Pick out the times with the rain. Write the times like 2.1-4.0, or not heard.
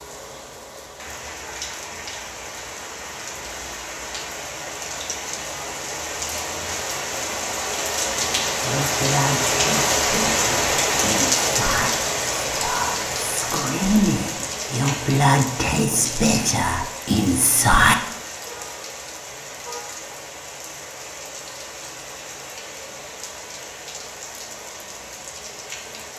0.0-26.1.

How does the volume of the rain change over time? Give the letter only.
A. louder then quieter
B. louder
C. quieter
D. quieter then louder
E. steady
A.